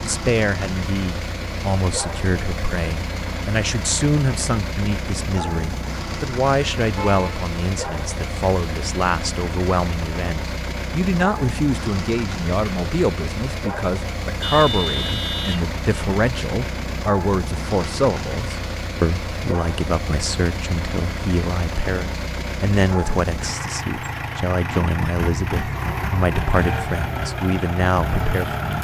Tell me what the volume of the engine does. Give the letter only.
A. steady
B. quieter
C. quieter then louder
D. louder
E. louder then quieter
A.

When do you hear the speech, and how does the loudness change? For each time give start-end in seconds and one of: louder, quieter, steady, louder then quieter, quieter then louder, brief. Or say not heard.
0.0-28.7 steady.